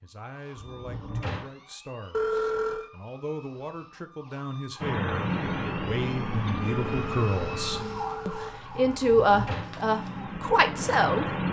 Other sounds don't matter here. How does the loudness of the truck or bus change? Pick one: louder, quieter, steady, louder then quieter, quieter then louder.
quieter then louder.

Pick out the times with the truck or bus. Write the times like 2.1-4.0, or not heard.
4.8-11.4.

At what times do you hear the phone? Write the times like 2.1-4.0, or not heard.
2.1-2.9, 6.7-8.6.